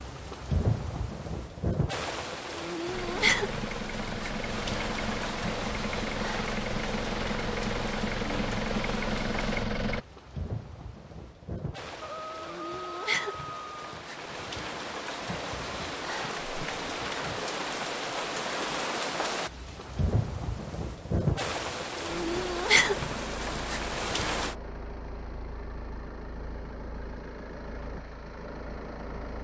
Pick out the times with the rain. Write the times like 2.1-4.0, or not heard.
0.0-24.6.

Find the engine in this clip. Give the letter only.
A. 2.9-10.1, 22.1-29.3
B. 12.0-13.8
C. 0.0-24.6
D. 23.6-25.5
A.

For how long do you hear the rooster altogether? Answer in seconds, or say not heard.
2 s.